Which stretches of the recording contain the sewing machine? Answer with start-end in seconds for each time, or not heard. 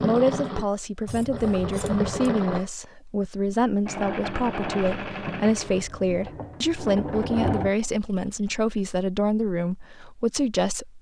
0.0-2.6, 3.9-7.8.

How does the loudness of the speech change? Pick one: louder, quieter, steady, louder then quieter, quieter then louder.
steady.